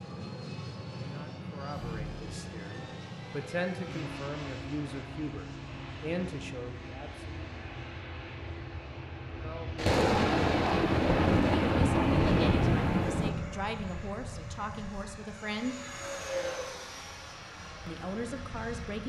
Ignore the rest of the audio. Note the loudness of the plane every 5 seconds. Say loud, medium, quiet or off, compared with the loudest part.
loud, medium, loud, loud.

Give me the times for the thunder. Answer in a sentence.
The thunder can be heard from 9.8 to 13.3 s.